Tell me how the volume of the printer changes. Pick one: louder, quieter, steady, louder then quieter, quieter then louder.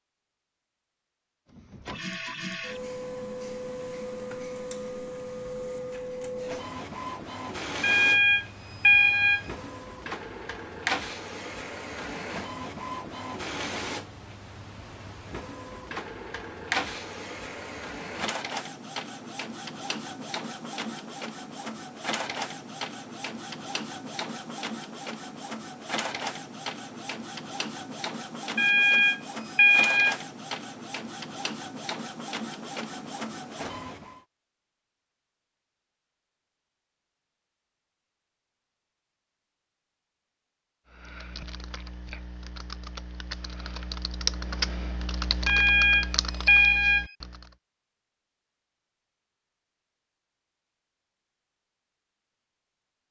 steady.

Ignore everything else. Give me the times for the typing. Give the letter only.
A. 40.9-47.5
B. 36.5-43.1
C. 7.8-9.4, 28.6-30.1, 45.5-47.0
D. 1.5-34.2
A.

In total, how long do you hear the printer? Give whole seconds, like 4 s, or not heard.
33 s.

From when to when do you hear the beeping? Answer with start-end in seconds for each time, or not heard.
7.8-9.4, 28.6-30.1, 45.5-47.0.